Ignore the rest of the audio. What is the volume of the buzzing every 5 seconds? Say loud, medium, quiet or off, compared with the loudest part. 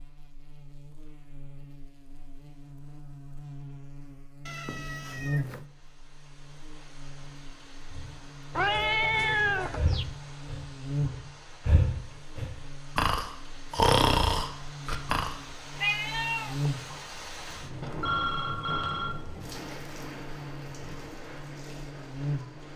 medium, loud, loud, loud, loud.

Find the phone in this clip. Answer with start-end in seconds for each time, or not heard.
17.8-19.1.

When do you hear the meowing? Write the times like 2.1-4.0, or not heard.
4.5-5.7, 8.6-10.1, 15.8-16.7.